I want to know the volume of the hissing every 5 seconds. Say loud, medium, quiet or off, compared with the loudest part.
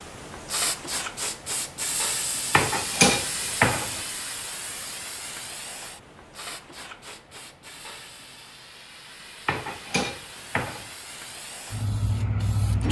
loud, medium, loud.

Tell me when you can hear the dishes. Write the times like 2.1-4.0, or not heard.
2.5-4.0, 9.4-10.9.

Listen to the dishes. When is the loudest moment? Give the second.
3 s.